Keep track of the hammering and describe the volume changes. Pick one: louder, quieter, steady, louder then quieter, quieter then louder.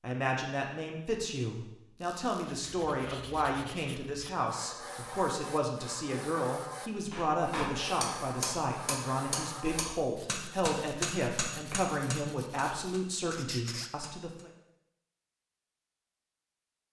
quieter.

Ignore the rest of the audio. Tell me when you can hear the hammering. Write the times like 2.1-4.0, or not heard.
7.1-14.5.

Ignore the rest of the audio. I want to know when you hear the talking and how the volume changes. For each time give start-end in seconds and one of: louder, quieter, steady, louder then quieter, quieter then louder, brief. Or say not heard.
0.0-14.5 steady.